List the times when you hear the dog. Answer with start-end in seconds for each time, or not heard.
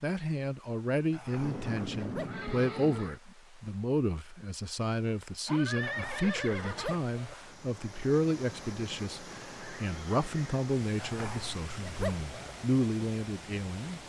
1.1-2.5, 5.8-7.3, 10.9-12.6.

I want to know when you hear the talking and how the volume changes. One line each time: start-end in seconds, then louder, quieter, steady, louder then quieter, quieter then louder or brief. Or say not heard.
0.0-14.0 steady.